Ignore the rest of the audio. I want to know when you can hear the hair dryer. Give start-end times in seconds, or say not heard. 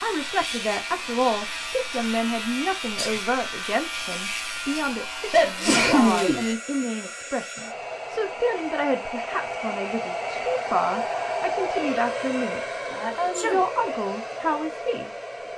0.0-15.5.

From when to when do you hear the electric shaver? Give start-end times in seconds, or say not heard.
0.0-6.5.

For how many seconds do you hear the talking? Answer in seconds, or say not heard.
15 s.